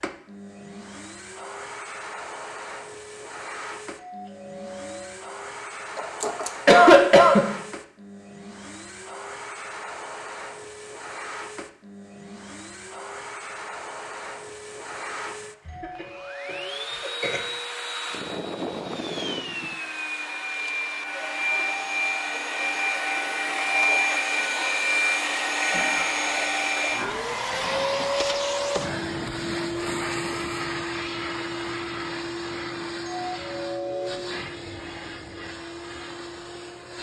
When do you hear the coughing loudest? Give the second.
7 s.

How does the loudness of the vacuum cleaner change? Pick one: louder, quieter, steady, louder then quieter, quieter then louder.
louder then quieter.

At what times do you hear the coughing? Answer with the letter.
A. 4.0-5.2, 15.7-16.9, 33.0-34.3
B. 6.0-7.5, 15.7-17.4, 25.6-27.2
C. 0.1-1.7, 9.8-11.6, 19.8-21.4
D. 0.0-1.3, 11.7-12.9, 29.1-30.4
B.